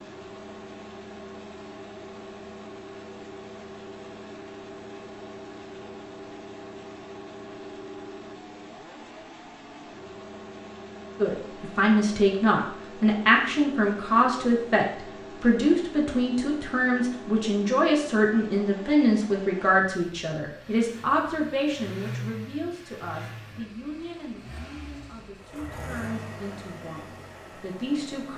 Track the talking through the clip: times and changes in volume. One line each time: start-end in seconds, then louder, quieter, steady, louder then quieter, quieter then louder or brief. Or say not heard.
11.2-28.3 quieter.